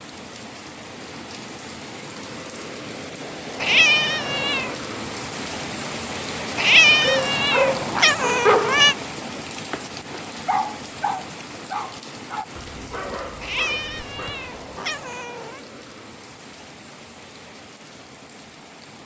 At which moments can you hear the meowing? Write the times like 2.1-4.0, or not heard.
3.6-4.8, 6.5-8.9, 13.4-15.6.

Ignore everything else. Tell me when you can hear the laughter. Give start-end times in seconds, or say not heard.
not heard.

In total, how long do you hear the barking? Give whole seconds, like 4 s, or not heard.
8 s.